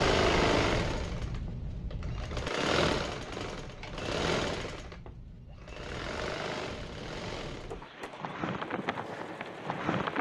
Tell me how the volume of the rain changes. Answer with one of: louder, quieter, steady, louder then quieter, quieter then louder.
quieter then louder.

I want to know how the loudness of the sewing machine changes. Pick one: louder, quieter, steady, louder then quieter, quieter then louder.
quieter.